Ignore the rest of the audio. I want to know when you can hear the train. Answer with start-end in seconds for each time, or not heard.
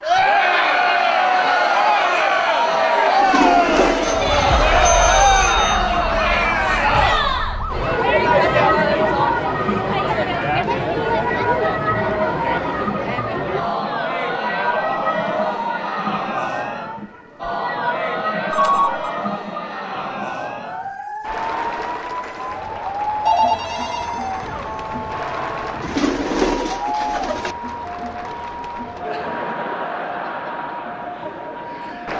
not heard.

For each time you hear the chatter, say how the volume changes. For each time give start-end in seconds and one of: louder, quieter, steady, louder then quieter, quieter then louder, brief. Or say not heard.
0.0-32.1 quieter.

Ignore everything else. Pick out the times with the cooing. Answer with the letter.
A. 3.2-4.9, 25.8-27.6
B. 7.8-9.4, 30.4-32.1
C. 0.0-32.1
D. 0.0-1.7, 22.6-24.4
A.